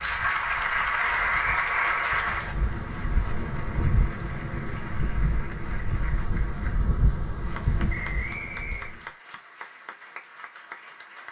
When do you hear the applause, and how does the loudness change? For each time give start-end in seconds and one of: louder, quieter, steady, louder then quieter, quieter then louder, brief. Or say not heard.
0.0-11.2 quieter.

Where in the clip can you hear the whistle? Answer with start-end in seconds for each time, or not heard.
1.0-2.5, 7.8-8.9.